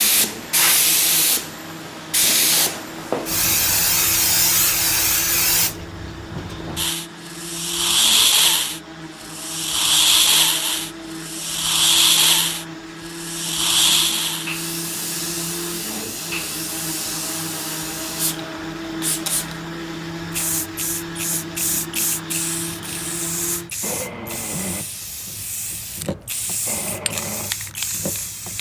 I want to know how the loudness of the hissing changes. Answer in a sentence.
The loudness of the hissing goes down.